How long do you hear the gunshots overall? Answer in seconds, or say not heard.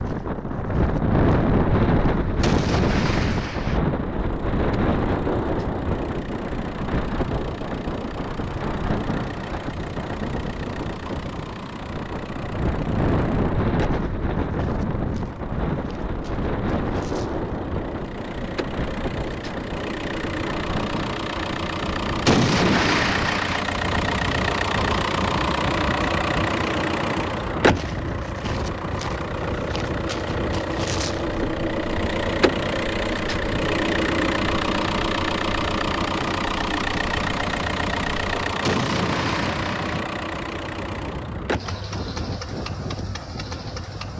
5 s.